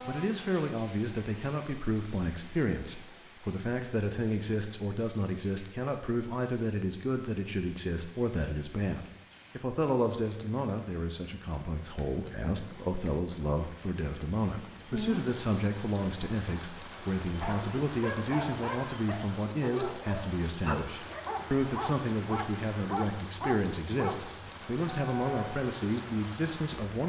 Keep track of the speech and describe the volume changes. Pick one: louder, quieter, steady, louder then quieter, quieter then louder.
steady.